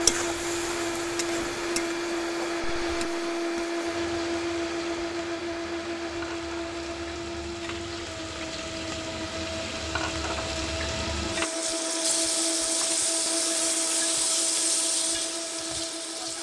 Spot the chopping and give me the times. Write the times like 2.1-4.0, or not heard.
not heard.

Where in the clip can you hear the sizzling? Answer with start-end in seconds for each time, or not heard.
0.0-16.3.